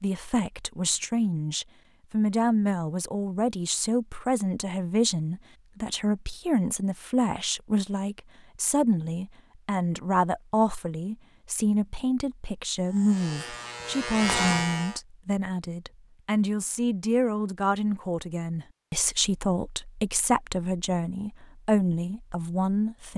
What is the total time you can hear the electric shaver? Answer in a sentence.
The electric shaver can be heard for 2 seconds in total.